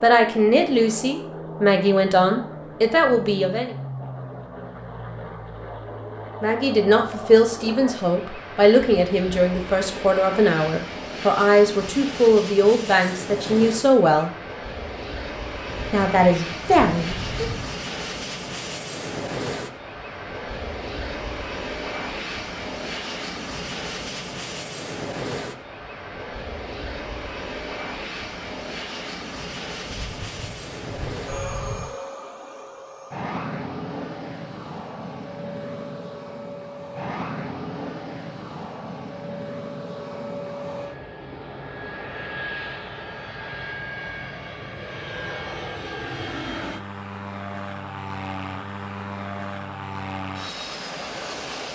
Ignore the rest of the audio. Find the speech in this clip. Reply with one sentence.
You can hear the speech from 0.0 to 3.8 s, from 6.4 to 14.3 s and from 15.9 to 17.5 s.